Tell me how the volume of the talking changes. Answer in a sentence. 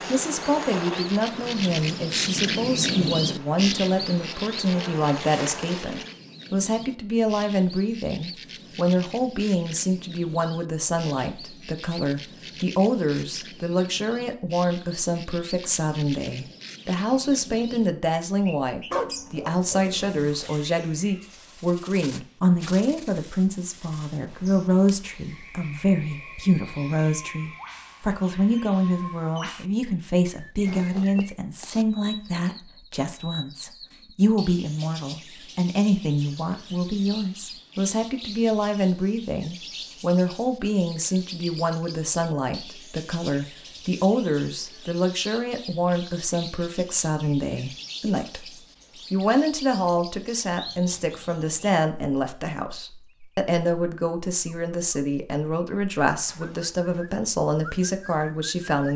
The loudness of the talking stays about the same.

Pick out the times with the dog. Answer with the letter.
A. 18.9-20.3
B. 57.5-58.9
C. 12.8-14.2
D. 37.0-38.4
A.